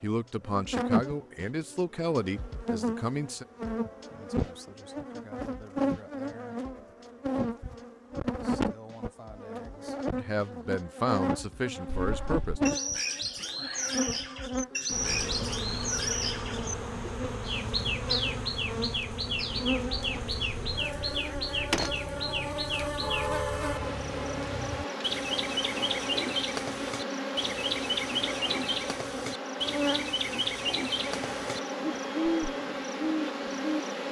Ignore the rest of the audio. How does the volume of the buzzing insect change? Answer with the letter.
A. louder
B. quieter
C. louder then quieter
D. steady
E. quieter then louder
D.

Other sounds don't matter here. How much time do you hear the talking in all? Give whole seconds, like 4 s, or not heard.
6 s.